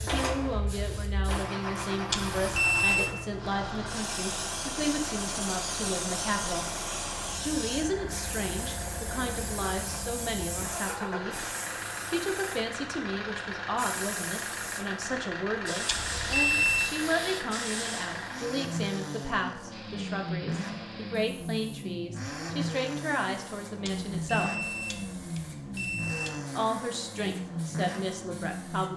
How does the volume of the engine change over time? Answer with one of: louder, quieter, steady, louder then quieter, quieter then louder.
steady.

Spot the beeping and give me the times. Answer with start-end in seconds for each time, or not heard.
2.1-3.1, 15.8-16.9, 23.9-26.4.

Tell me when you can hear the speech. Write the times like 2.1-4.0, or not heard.
0.0-6.7, 7.4-11.4, 12.1-24.6, 26.6-28.9.